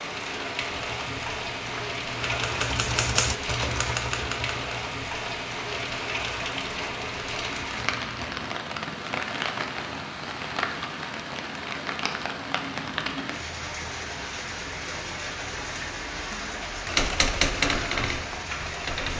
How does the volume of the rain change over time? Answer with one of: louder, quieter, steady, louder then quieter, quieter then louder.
steady.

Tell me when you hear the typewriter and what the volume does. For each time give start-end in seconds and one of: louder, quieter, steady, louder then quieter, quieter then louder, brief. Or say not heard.
0.7-8.3 louder then quieter
16.9-19.1 brief.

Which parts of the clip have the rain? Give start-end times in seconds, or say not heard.
0.0-19.1.